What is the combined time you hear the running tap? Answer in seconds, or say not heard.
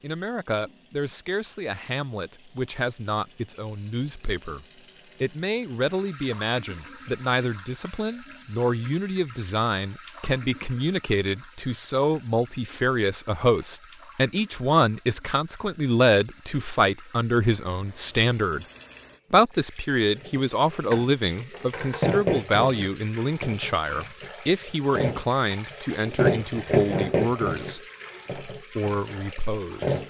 30 s.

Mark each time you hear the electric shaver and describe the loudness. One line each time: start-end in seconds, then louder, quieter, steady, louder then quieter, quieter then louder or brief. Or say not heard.
not heard.